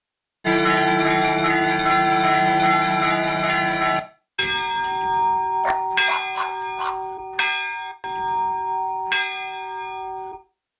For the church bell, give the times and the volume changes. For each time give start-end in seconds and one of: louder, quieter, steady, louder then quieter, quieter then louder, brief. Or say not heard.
0.5-10.4 quieter.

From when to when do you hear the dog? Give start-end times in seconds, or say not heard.
5.6-7.0.